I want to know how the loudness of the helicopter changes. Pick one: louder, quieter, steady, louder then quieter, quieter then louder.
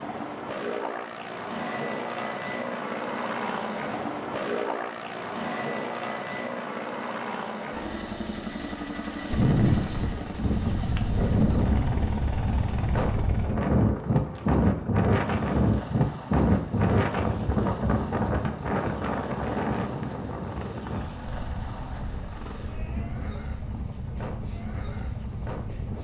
quieter.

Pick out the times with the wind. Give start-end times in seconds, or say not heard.
9.3-25.9.